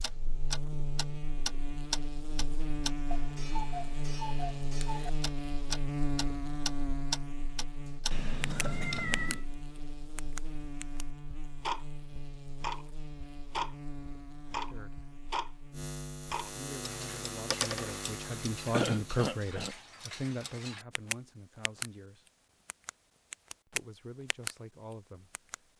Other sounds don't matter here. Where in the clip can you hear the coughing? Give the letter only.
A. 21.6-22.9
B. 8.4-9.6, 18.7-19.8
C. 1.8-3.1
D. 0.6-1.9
B.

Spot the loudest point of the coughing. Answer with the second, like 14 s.
19 s.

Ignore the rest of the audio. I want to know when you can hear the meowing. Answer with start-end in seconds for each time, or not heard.
8.1-9.4.